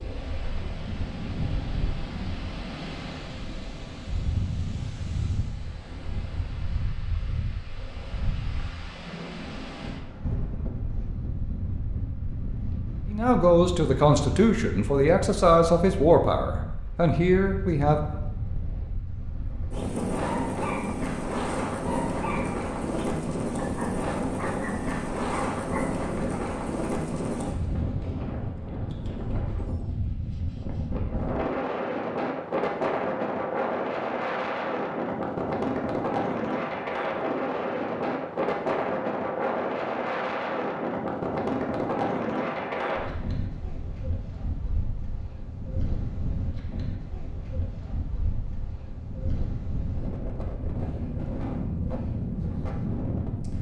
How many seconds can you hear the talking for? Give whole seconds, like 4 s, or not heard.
5 s.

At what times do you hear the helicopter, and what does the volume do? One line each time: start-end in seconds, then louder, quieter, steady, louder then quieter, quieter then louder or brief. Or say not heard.
not heard.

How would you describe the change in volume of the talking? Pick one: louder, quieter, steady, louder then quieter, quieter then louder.
steady.